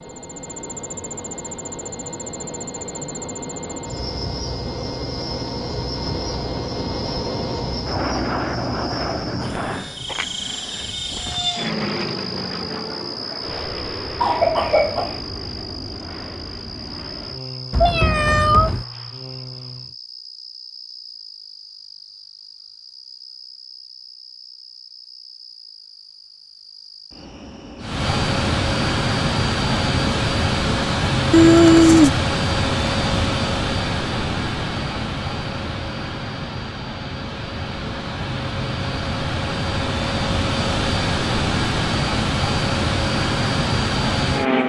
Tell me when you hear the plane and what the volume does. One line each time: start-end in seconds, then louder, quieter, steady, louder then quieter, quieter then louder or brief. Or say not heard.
0.0-19.9 louder then quieter
27.8-44.6 quieter then louder.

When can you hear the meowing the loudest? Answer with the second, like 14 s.
32 s.